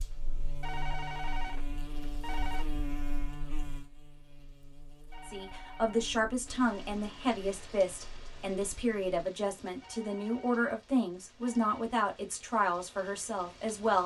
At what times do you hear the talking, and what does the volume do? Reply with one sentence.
The talking can be heard from 5.2 to 14.0 s, at a steady volume.